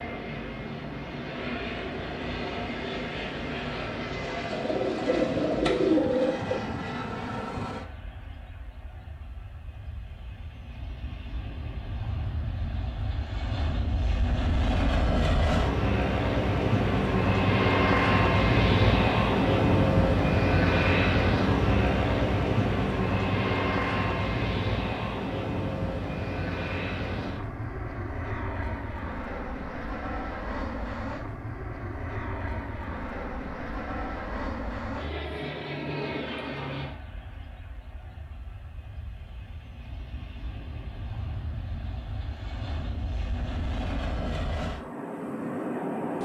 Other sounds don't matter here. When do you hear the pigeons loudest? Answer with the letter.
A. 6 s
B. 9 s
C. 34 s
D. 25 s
A.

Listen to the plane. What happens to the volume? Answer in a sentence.
The volume of the plane goes up, then down.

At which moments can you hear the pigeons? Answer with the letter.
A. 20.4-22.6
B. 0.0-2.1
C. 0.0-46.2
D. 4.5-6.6
D.